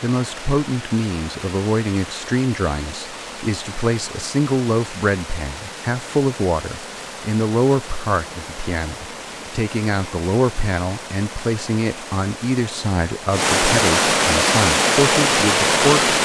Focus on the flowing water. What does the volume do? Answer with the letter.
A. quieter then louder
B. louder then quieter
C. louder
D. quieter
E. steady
C.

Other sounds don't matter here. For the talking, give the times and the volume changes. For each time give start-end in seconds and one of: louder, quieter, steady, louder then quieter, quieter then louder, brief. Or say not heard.
0.0-16.1 steady.